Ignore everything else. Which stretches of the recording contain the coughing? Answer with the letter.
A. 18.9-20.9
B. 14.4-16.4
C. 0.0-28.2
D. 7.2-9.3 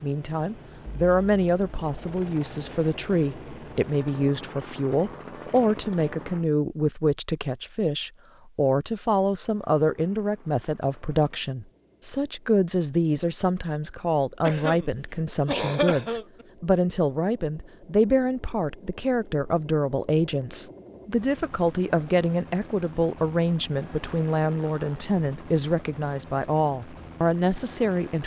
B.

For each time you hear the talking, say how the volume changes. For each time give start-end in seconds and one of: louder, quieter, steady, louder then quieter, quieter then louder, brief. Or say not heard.
0.0-28.2 steady.